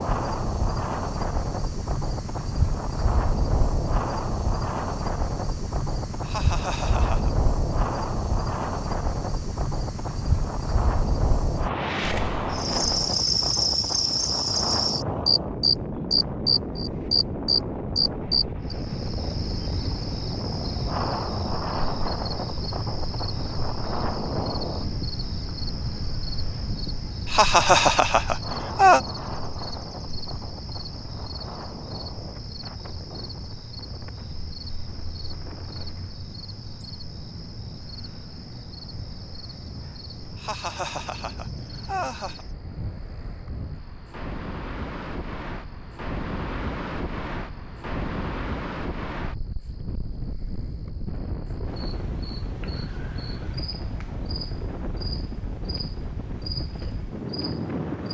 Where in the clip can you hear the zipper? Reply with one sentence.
The zipper can't be heard in this clip.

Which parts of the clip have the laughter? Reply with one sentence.
The laughter can be heard from 6.2 to 7.3 s, from 27.2 to 29.0 s and from 40.4 to 42.5 s.